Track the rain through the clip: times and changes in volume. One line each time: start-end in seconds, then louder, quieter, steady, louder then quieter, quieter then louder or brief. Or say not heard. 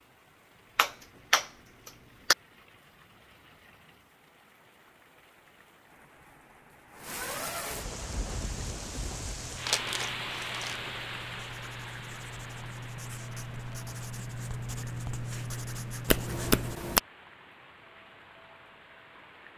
0.0-19.5 louder then quieter.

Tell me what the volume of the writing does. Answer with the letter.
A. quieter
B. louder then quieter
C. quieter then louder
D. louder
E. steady
D.